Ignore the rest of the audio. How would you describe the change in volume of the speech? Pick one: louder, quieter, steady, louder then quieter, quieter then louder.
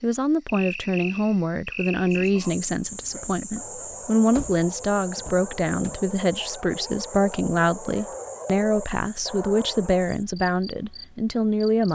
steady.